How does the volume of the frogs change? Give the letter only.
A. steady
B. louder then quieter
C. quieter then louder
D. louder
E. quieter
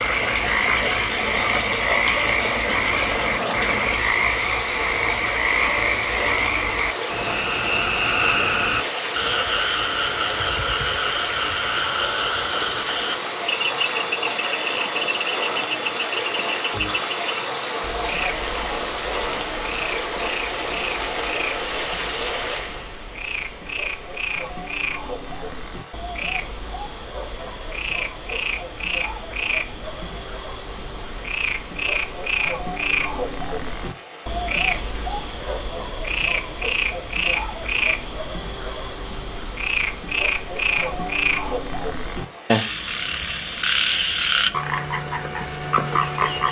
C.